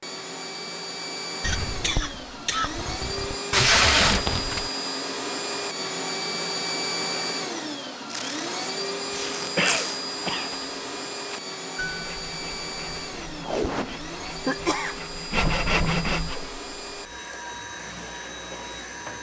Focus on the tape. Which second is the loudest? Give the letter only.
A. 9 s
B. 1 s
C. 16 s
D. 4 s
D.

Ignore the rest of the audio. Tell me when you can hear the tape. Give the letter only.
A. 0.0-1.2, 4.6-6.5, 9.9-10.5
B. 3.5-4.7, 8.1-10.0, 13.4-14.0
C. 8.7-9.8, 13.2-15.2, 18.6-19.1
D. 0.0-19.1
B.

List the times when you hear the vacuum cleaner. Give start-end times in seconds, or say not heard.
0.0-19.1.